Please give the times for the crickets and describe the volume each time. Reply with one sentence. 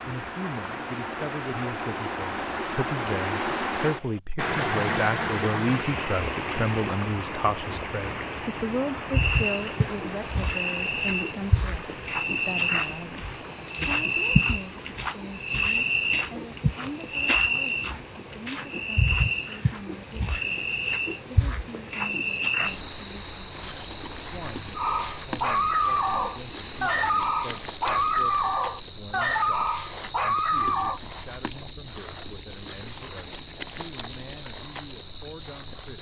The crickets can be heard from 9.1 to 35.9 s, at a steady volume.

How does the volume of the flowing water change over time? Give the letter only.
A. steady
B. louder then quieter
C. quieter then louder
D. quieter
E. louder
D.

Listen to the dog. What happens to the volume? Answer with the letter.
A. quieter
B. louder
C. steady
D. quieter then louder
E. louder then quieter
C.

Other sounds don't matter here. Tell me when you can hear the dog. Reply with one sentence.
The dog can be heard from 24.8 to 31.0 s.